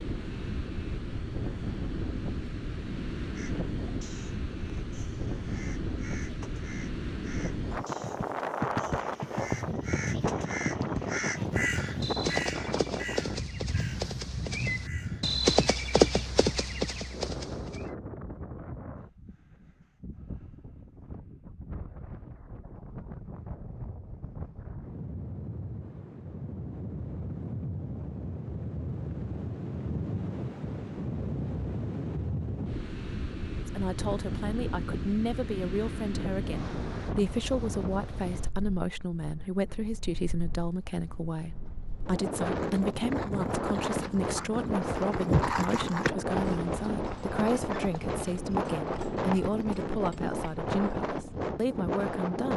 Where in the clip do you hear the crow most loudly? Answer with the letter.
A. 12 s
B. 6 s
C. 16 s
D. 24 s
A.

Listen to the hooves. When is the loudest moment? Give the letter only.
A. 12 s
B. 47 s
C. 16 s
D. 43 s
C.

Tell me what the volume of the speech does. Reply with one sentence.
The loudness of the speech stays about the same.